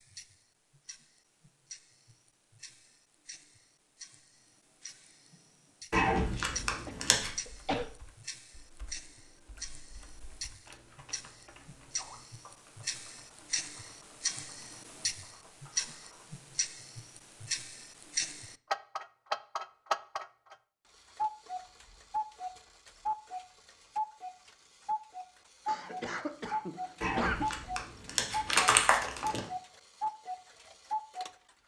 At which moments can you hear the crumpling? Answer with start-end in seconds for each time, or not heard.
5.9-7.3, 27.0-29.4.